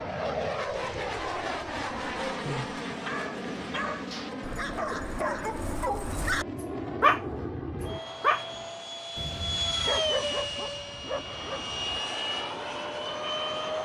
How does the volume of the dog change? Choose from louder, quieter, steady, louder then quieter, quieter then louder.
louder then quieter.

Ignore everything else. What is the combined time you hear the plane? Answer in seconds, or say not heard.
14 s.